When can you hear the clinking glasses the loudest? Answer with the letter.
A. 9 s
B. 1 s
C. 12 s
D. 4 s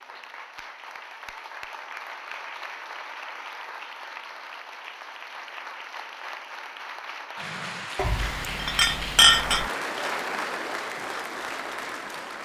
A.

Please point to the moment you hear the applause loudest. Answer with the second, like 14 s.
10 s.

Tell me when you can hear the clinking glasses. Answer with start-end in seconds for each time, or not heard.
8.0-9.7.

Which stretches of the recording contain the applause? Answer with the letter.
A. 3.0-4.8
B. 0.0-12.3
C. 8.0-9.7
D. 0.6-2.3
B.